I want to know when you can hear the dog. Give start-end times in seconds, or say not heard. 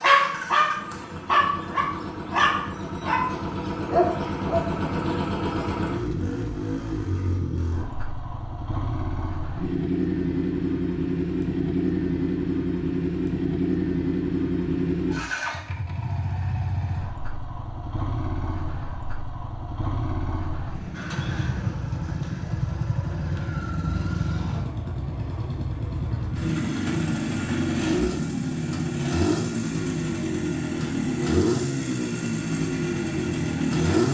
0.0-4.8.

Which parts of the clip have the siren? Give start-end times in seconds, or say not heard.
not heard.